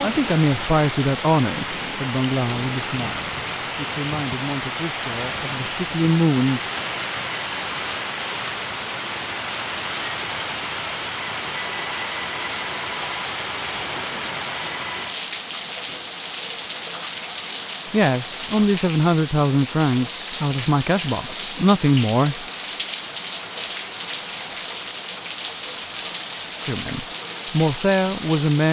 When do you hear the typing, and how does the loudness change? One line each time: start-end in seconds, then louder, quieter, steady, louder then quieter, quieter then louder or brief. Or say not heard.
not heard.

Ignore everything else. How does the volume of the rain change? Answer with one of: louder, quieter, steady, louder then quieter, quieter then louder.
steady.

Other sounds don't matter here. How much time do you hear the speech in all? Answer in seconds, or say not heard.
13 s.